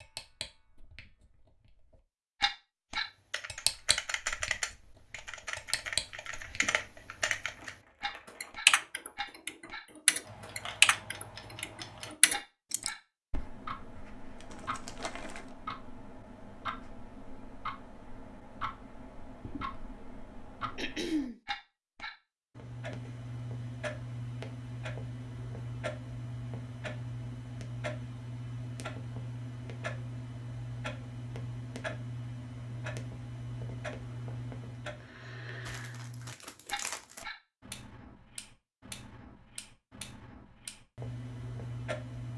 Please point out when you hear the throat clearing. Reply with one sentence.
You can hear the throat clearing from 20.8 to 21.4 s.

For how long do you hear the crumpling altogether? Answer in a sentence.
The crumpling can be heard for 5 seconds in total.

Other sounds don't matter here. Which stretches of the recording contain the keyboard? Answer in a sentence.
The keyboard can be heard from 3.3 to 12.9 s.